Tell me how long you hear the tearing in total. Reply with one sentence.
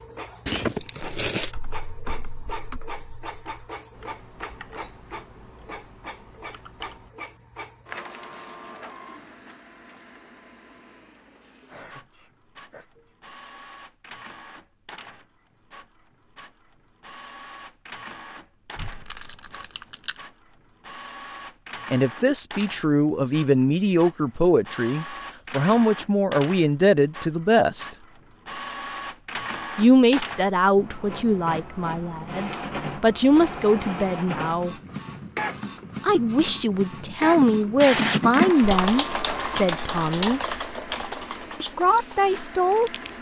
The tearing can be heard for 5 seconds in total.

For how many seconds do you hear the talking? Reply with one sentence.
You can hear the talking for 17 seconds altogether.